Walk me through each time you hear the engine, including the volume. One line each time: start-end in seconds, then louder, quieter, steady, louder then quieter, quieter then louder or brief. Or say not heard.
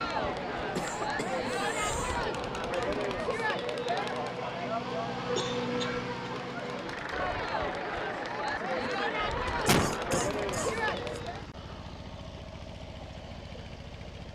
0.0-14.3 louder then quieter.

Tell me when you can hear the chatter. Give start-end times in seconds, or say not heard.
0.0-11.4.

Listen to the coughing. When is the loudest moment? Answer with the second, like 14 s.
10 s.